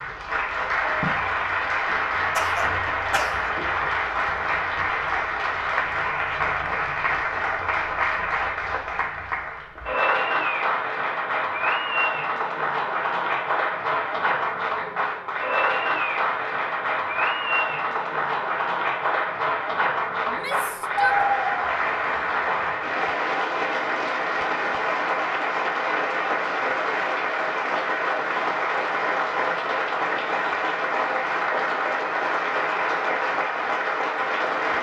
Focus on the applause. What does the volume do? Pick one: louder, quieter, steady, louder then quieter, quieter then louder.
steady.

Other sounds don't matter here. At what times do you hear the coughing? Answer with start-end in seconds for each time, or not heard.
2.4-3.5.